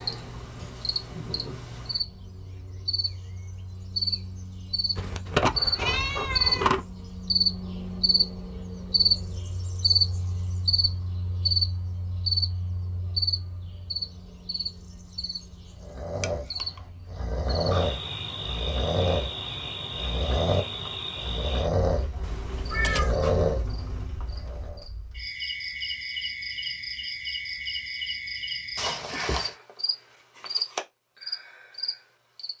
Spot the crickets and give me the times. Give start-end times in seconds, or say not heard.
0.0-32.5.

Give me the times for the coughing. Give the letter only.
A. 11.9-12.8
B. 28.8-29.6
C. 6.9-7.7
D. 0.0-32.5
B.